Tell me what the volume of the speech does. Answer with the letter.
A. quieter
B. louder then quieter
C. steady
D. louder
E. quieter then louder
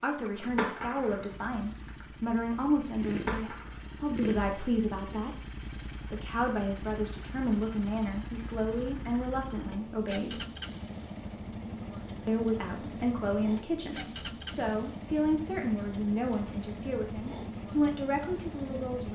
C.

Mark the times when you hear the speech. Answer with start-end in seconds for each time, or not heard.
0.0-10.4, 12.2-19.1.